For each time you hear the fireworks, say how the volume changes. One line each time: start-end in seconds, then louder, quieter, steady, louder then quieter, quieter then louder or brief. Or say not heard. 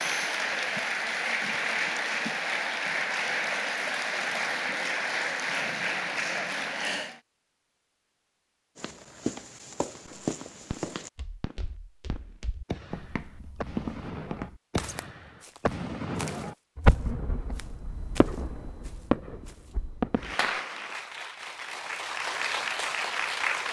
10.1-20.6 louder.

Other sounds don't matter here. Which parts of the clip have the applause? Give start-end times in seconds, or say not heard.
0.0-7.2, 20.1-23.6.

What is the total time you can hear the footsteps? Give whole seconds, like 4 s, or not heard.
11 s.